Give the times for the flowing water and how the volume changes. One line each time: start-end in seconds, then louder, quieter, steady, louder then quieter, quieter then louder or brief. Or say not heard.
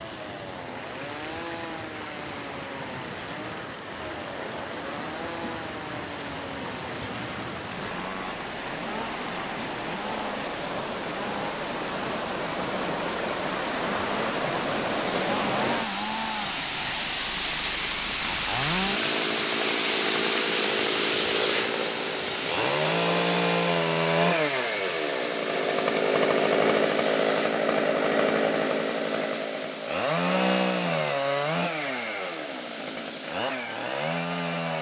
0.0-34.7 louder then quieter.